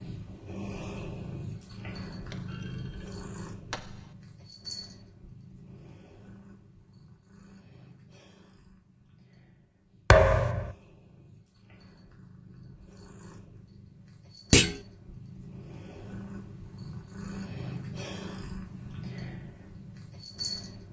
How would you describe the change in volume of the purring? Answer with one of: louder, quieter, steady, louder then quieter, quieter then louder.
quieter then louder.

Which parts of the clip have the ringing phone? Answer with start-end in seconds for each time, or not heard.
not heard.